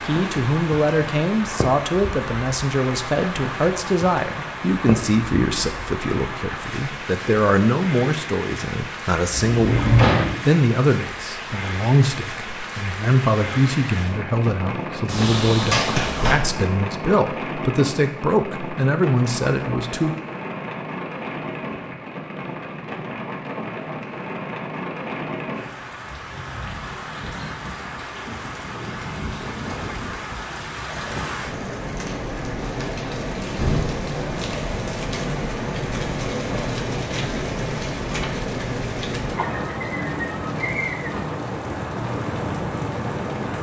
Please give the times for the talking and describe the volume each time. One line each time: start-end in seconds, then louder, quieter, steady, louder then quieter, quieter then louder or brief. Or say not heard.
0.1-20.1 steady.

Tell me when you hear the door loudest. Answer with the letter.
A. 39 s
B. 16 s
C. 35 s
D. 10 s
D.